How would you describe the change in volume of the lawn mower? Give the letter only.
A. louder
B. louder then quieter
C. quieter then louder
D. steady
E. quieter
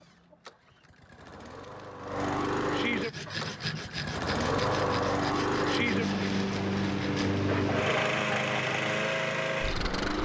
A.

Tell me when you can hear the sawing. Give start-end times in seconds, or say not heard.
3.0-8.9.